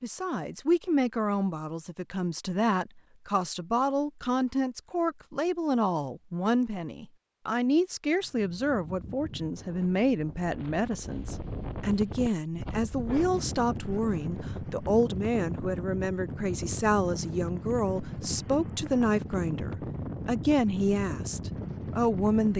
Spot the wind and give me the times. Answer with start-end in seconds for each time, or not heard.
8.2-22.5.